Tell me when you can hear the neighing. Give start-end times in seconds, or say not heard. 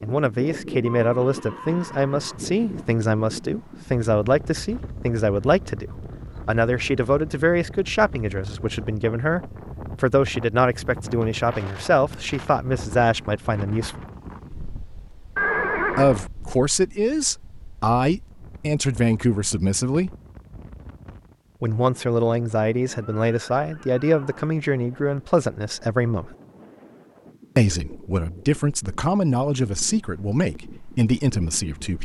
0.8-2.9, 15.3-16.3, 22.9-24.6.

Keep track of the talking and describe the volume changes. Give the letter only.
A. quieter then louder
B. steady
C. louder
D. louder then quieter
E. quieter
B.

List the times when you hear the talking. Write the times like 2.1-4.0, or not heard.
0.0-14.0, 15.9-20.1, 21.6-26.4, 27.6-31.9.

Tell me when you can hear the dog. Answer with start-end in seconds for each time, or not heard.
not heard.